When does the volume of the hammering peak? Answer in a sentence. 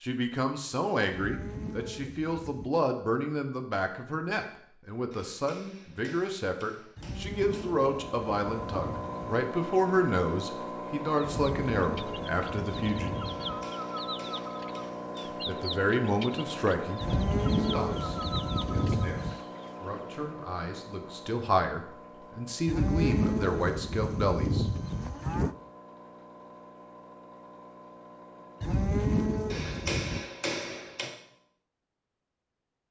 The loudest moment of the hammering is at 30 seconds.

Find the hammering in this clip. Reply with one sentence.
The hammering can be heard from 5.1 to 7.7 s, from 13.2 to 15.3 s and from 29.5 to 31.1 s.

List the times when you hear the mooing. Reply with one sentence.
You can hear the mooing from 1.1 to 2.7 s, from 7.0 to 9.3 s, from 11.2 to 13.7 s, from 17.0 to 19.4 s, from 22.6 to 25.6 s and from 28.6 to 30.2 s.